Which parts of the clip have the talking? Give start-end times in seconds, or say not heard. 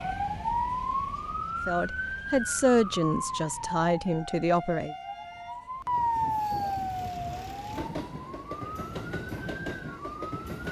1.6-5.0.